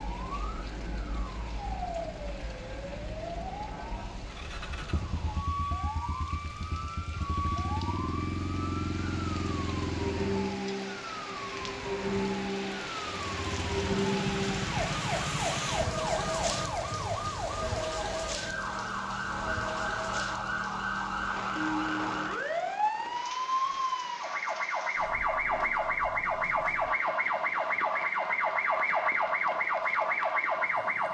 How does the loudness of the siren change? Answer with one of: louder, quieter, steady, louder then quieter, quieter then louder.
louder.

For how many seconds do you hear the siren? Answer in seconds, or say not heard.
31 s.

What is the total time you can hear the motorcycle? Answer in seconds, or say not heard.
10 s.